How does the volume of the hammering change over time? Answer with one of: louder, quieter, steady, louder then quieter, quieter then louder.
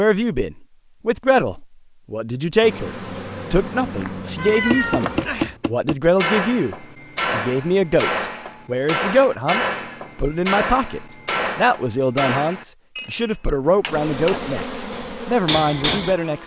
steady.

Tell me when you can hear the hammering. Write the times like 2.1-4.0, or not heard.
4.5-16.1.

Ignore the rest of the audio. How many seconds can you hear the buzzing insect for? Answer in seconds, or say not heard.
5 s.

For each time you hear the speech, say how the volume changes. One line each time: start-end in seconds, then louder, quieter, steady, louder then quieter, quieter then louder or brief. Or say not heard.
0.0-14.7 steady
15.2-16.4 brief.